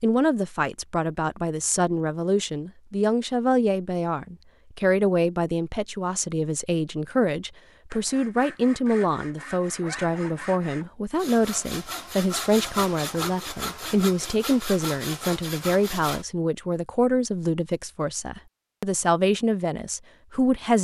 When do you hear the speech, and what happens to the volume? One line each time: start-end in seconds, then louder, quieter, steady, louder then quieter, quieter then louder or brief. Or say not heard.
0.0-20.7 steady.